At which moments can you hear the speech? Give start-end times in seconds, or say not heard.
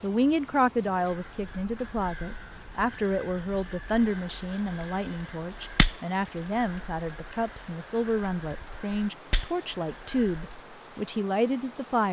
0.0-12.0.